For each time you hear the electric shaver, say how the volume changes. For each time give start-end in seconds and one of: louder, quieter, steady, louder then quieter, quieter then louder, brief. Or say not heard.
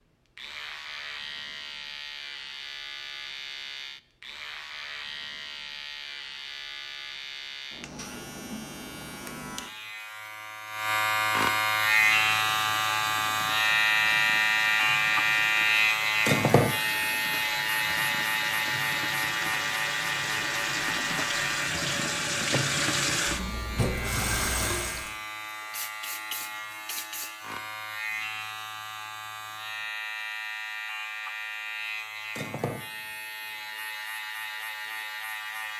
0.3-35.7 louder then quieter.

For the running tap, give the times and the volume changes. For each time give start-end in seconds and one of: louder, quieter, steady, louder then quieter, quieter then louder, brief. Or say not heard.
11.7-25.1 louder.